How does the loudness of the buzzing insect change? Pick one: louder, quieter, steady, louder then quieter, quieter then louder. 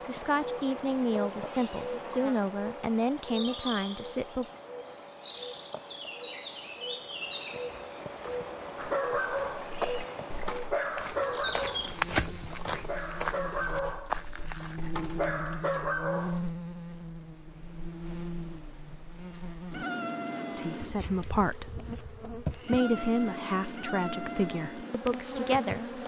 steady.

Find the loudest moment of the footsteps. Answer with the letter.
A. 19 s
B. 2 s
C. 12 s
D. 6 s
C.